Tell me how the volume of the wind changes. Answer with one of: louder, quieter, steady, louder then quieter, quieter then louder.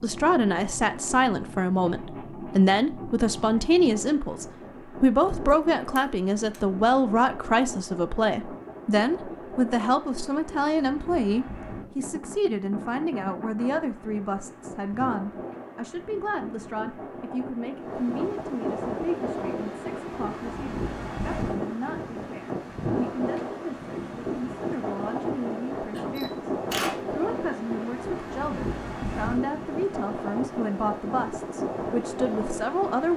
louder.